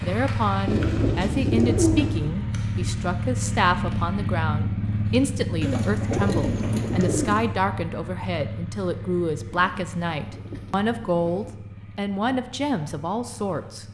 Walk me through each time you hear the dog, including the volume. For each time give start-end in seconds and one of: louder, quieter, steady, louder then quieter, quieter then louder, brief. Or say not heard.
not heard.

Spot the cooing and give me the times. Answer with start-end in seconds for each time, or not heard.
0.7-2.2, 5.6-7.5, 9.5-11.6.